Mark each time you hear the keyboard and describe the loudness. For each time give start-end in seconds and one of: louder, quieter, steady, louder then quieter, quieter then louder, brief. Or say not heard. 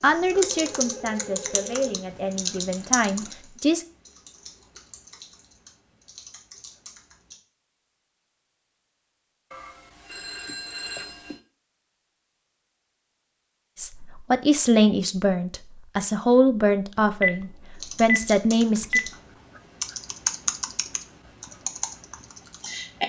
0.1-7.3 quieter
17.8-23.0 louder then quieter.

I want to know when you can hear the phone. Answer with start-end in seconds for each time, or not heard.
0.3-1.9, 9.5-11.4, 17.0-19.1.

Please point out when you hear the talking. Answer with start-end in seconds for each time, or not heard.
0.0-3.9, 13.8-19.0.